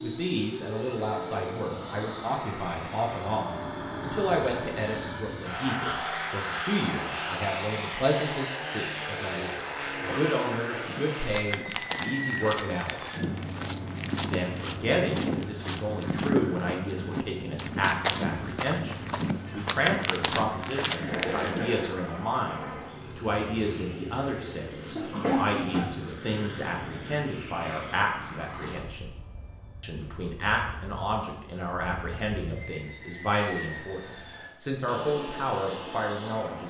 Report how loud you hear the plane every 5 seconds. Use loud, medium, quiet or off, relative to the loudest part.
loud, loud, loud, medium, medium, medium, medium, medium.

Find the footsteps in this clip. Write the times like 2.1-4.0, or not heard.
10.8-21.8.